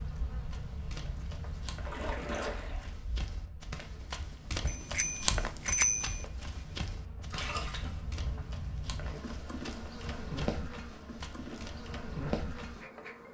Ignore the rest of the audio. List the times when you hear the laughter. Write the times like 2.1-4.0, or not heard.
not heard.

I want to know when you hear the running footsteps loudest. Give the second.
5 s.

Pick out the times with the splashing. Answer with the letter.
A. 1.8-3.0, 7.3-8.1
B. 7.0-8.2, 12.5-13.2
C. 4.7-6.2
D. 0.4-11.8
A.